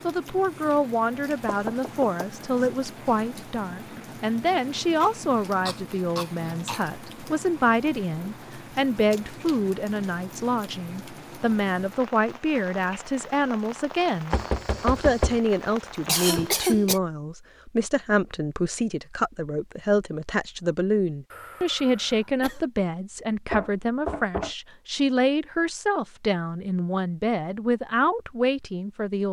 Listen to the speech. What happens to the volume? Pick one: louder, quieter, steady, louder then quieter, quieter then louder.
steady.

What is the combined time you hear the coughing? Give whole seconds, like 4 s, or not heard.
4 s.